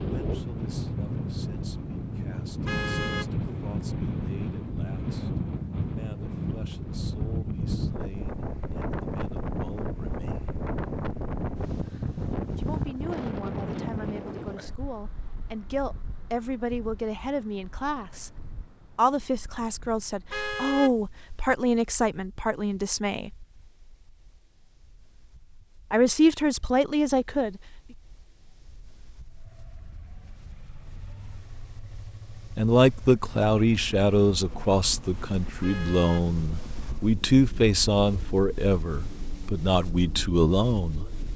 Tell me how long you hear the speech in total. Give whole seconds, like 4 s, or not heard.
31 s.